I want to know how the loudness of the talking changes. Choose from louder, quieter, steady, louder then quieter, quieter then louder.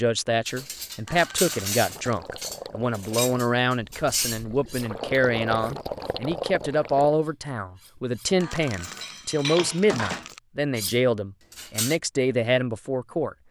steady.